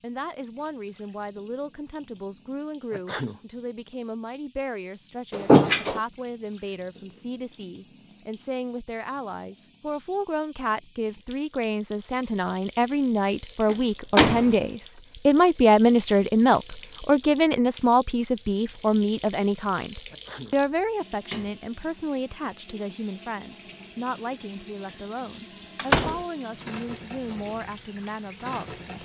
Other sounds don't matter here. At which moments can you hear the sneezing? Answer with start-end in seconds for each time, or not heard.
2.9-3.4, 20.1-20.6.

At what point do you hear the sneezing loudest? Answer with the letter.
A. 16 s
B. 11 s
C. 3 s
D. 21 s
C.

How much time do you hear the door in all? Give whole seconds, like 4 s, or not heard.
2 s.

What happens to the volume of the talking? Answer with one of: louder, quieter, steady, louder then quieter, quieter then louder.
louder then quieter.